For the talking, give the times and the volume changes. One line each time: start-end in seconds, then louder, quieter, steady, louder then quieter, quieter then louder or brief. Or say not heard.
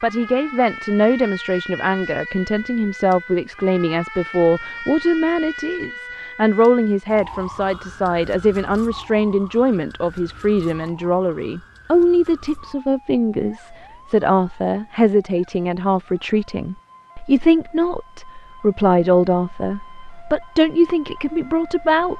0.0-22.1 steady.